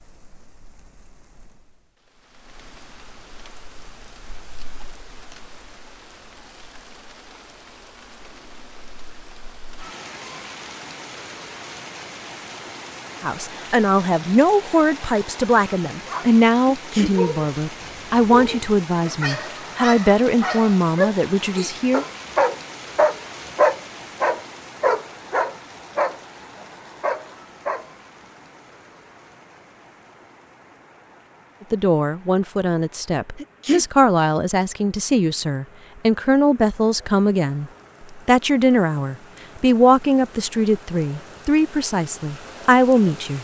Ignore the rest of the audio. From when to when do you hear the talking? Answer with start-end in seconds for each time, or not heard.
13.2-22.1, 31.7-43.4.